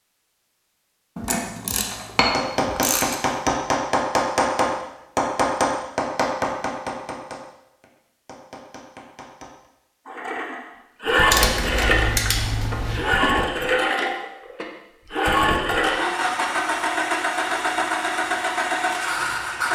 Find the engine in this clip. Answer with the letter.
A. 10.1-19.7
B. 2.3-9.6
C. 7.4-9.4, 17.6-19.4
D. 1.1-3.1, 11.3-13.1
A.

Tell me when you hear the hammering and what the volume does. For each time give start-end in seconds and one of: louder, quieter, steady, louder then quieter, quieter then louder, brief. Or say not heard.
2.3-9.6 quieter.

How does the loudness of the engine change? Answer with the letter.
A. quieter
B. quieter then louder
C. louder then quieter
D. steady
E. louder
D.